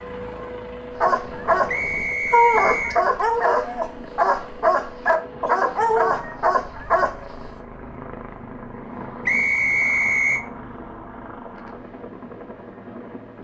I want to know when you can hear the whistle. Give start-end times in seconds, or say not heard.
1.6-3.0, 9.2-10.4.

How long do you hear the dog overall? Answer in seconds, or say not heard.
7 s.